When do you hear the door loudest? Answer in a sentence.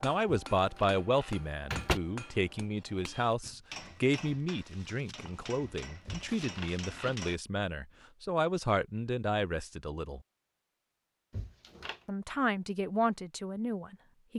The volume of the door peaks at 2 seconds.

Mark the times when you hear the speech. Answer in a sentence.
The speech can be heard from 0.0 to 10.2 s and from 12.1 to 14.3 s.